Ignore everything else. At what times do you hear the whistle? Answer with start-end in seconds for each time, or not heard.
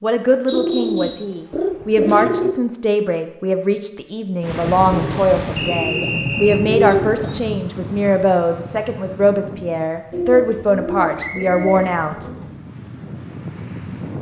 0.5-1.3, 5.5-6.7, 11.2-12.4.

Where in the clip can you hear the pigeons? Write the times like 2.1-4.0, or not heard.
0.5-2.5, 4.9-7.5, 10.1-12.7.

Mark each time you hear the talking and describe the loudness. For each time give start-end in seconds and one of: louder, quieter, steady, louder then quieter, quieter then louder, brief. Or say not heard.
0.0-12.2 steady.